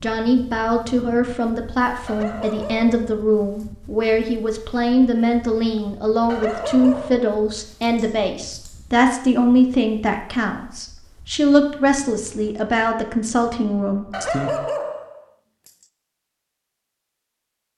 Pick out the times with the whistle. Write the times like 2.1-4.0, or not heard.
not heard.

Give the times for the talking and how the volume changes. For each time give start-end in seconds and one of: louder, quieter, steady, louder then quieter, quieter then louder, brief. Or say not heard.
0.0-14.5 steady.